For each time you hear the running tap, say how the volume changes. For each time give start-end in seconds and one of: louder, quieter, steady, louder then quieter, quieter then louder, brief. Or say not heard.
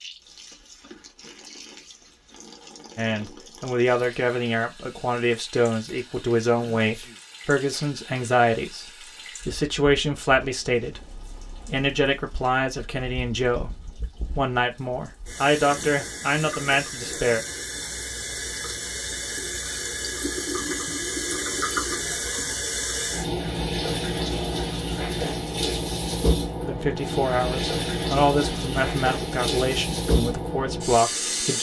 0.0-31.5 louder.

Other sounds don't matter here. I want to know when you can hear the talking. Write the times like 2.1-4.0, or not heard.
3.0-17.4, 26.6-31.5.